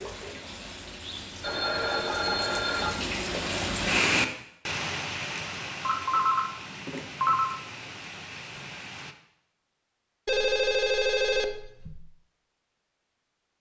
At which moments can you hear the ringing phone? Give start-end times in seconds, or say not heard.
1.4-3.0, 5.8-7.5, 10.2-12.1.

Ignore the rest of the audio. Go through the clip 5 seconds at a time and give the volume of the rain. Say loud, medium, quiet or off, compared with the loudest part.
loud, medium, off.